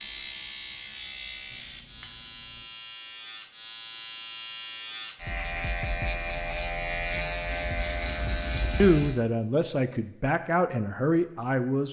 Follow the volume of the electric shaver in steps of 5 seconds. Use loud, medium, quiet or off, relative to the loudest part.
medium, loud, off.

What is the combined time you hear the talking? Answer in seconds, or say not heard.
3 s.